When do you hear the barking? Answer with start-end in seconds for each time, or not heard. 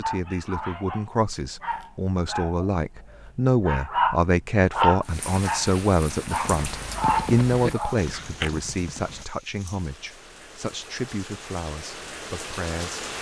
0.0-8.5.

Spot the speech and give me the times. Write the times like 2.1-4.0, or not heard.
0.0-13.1.